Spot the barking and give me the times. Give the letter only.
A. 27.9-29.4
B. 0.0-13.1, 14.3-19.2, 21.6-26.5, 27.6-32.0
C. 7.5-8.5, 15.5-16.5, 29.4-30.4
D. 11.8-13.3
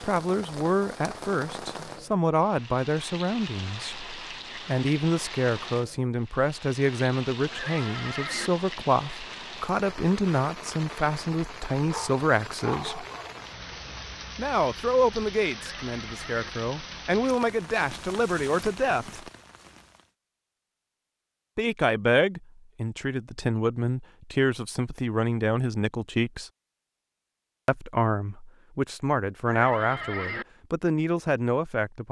D.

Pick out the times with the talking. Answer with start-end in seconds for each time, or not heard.
0.0-13.1, 14.3-19.2, 21.6-26.5, 27.6-32.0.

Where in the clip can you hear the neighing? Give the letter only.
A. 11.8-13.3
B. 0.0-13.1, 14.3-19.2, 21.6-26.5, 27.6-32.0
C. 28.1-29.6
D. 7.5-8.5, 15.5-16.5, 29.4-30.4
D.